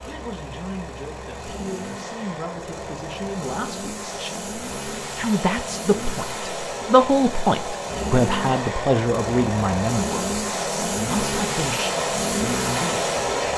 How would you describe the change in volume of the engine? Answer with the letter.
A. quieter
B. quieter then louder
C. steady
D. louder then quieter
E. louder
E.